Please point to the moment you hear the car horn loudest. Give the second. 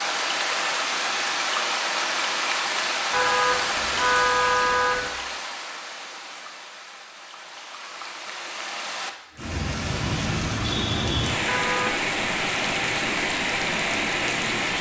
4 s.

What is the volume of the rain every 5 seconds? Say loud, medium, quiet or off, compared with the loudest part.
loud, medium, loud.